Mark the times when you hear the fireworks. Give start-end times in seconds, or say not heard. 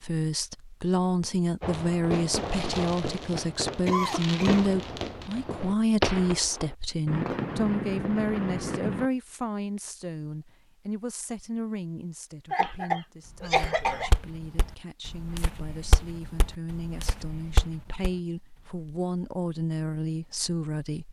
1.6-9.1.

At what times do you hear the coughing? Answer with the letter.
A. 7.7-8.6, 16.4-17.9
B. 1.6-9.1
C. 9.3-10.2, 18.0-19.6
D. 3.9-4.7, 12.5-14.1
D.